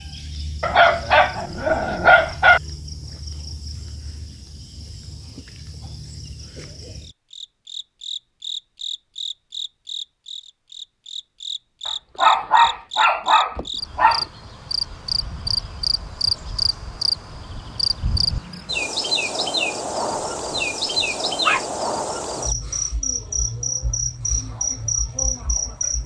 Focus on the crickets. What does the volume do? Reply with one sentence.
The loudness of the crickets goes up.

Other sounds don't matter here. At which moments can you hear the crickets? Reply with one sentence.
The crickets can be heard from 0.0 to 26.0 s.